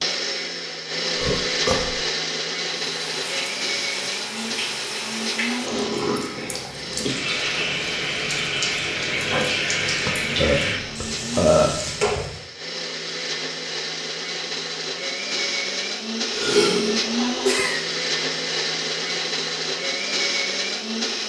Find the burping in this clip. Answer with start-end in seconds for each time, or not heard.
1.2-1.9, 10.1-11.8, 16.3-17.9.